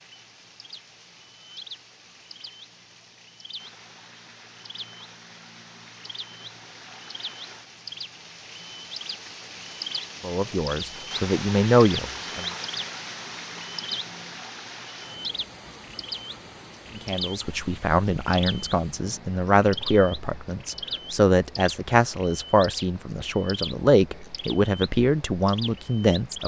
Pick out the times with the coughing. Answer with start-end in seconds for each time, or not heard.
not heard.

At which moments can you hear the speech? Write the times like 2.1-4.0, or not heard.
10.2-12.4, 16.9-26.4.